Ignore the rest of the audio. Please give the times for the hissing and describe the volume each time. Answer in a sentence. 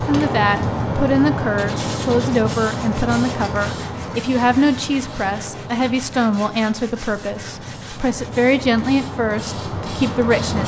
You can hear the hissing from 0.0 to 10.6 s, getting quieter then louder.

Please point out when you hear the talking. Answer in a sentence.
You can hear the talking from 0.0 to 10.6 s.